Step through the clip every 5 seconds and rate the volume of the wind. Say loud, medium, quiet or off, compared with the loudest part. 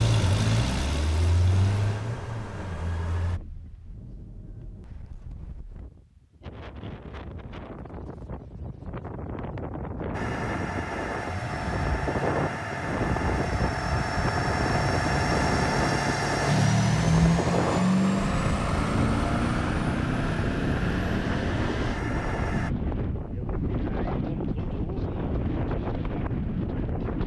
quiet, medium, loud, loud, loud, loud.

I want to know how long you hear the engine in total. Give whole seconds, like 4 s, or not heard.
16 s.